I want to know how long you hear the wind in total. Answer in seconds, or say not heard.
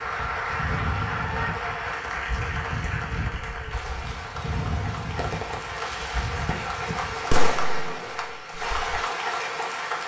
8 s.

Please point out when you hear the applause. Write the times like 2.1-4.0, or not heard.
0.0-10.0.